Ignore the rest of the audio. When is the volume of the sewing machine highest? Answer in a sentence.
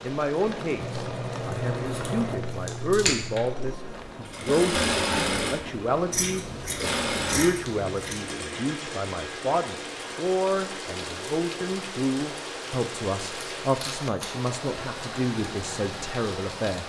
The volume of the sewing machine peaks at 5 seconds.